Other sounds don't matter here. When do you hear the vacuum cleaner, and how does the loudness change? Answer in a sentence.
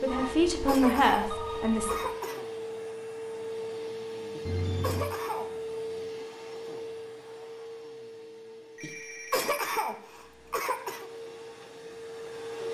You can hear the vacuum cleaner from 0.0 to 12.6 s, getting quieter.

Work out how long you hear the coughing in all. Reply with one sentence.
You can hear the coughing for 6 seconds altogether.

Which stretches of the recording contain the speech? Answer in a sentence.
You can hear the speech from 0.0 to 1.9 s.